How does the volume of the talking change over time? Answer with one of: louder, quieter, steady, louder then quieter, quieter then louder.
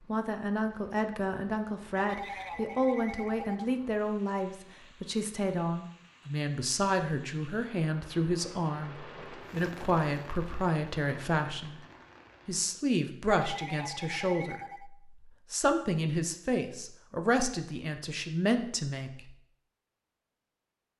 steady.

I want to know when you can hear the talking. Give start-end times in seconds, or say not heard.
0.0-11.8, 12.4-19.4.